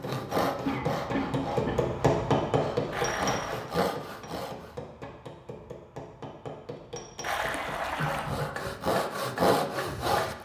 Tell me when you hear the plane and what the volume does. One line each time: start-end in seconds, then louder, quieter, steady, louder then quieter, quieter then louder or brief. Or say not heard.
not heard.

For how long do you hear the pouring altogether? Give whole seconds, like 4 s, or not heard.
2 s.